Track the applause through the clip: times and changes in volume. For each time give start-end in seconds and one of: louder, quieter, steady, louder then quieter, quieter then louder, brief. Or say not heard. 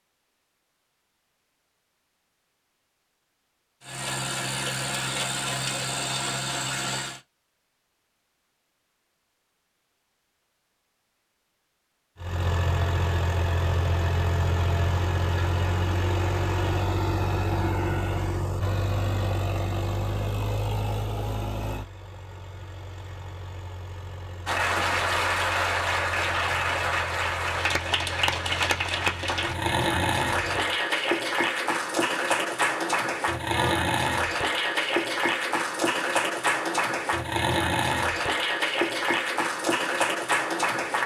24.4-41.0 steady.